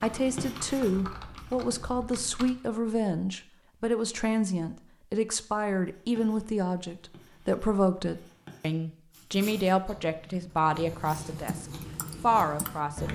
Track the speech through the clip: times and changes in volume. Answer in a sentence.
The speech can be heard from 0.0 to 13.1 s, at a steady volume.